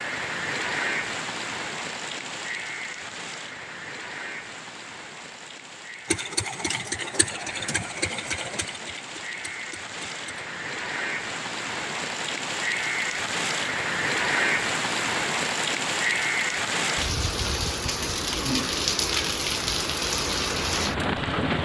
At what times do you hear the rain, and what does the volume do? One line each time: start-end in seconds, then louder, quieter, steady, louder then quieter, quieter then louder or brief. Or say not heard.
0.0-21.6 quieter then louder.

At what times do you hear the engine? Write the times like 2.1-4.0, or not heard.
6.0-10.4.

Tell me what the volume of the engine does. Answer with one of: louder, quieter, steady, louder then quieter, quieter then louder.
quieter.